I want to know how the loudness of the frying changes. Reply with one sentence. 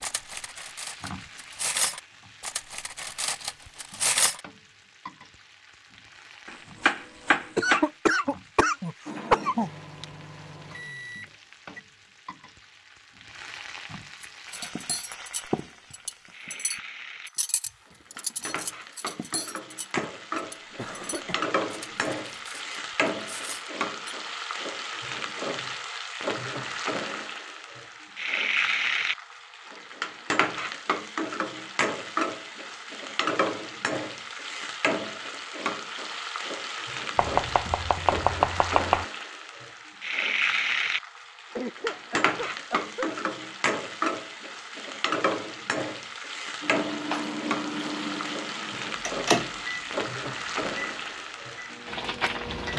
The loudness of the frying goes up.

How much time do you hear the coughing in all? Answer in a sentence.
You can hear the coughing for 5 seconds altogether.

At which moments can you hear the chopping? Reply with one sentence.
The chopping can be heard from 6.5 to 7.8 s and from 37.1 to 39.0 s.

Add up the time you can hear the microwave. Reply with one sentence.
You can hear the microwave for 9 seconds altogether.